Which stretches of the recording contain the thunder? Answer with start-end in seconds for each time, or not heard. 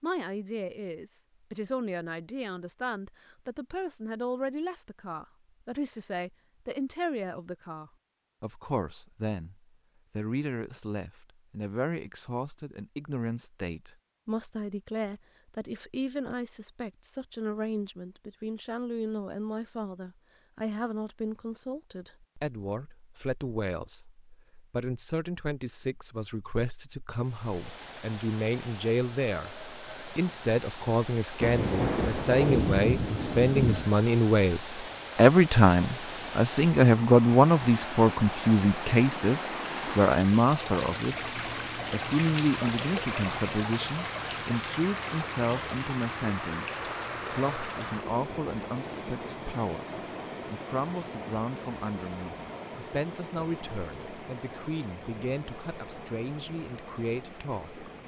31.4-33.9.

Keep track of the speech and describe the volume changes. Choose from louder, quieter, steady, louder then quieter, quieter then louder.
louder then quieter.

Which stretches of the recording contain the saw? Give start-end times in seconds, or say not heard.
not heard.